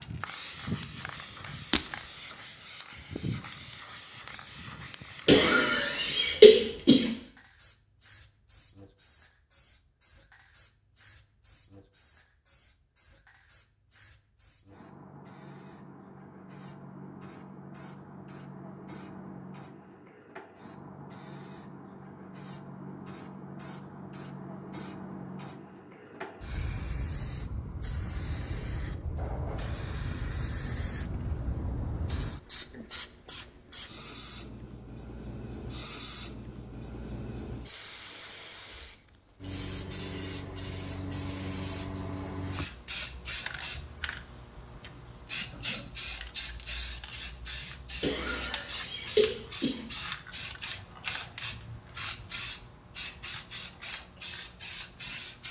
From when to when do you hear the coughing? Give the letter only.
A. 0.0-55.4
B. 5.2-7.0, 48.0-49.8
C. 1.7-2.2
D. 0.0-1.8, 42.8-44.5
B.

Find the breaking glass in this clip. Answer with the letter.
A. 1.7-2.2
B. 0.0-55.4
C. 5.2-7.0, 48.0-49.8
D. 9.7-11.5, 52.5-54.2
A.